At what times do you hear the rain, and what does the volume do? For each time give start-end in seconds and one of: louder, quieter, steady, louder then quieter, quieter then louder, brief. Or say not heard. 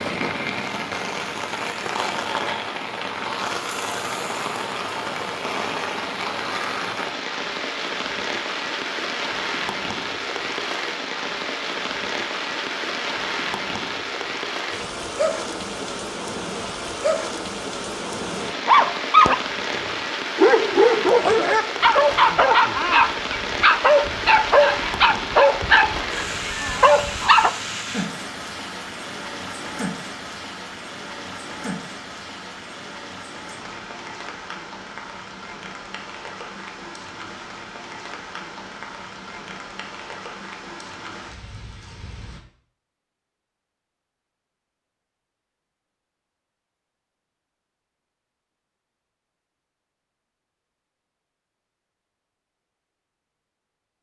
0.0-42.4 quieter.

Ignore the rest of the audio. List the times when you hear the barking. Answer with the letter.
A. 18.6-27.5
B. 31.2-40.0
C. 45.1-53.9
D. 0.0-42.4
A.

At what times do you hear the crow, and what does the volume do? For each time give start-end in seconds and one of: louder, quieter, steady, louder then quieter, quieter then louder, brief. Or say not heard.
not heard.